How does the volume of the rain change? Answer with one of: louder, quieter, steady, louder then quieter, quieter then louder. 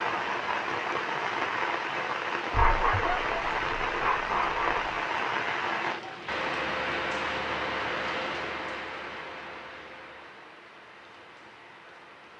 quieter.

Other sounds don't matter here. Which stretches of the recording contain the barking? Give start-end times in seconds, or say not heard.
2.5-4.8.